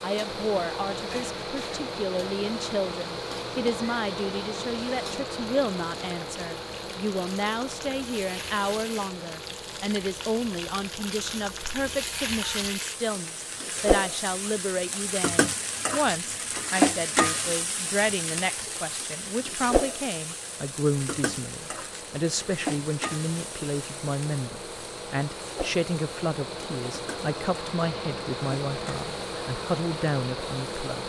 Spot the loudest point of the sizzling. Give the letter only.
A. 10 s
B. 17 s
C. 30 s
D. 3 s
B.